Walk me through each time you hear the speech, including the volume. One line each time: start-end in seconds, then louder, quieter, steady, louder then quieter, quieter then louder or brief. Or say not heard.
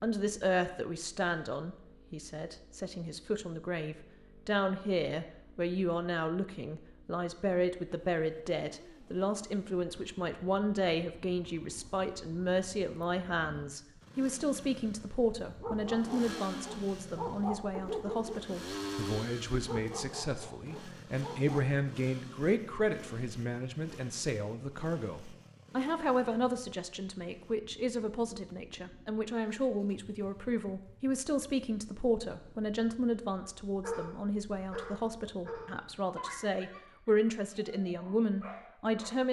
0.0-39.2 steady.